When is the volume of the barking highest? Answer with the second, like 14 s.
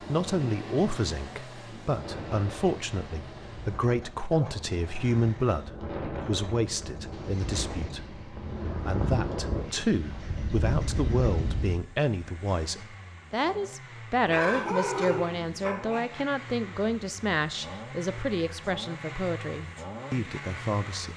15 s.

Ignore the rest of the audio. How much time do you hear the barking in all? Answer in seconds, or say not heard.
3 s.